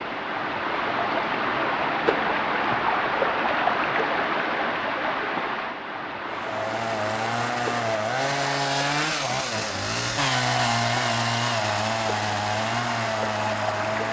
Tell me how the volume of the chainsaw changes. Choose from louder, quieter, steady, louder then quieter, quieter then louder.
steady.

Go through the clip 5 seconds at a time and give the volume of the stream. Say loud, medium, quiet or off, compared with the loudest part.
loud, medium, medium.